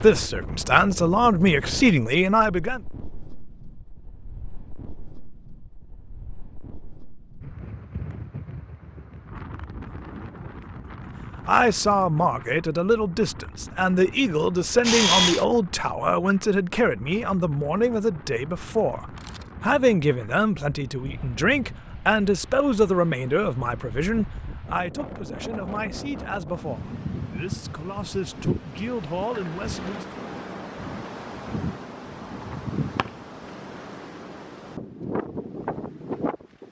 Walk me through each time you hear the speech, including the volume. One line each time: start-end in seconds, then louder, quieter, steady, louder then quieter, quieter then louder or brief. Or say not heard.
0.0-2.8 brief
11.4-30.2 quieter.